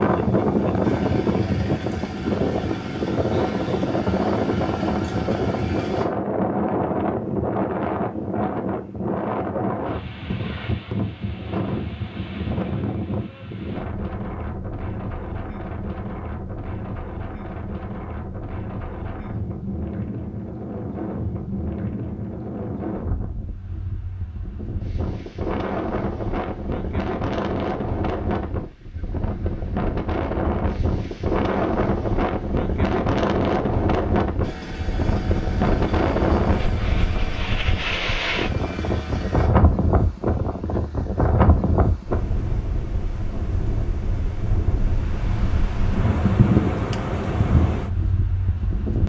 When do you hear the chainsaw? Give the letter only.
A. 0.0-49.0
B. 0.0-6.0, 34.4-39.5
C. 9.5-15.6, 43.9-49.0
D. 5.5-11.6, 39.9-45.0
B.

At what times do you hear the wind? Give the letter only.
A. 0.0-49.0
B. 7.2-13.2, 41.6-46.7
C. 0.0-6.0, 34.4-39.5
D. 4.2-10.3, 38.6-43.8
A.